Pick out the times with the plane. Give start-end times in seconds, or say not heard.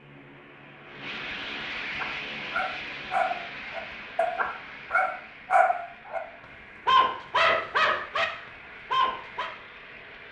0.0-10.2.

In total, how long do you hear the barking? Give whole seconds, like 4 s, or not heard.
6 s.